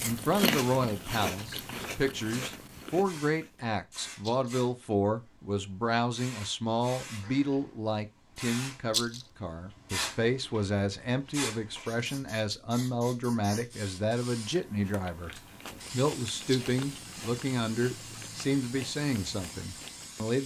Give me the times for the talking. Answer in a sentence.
You can hear the talking from 0.0 to 15.3 s and from 15.9 to 20.4 s.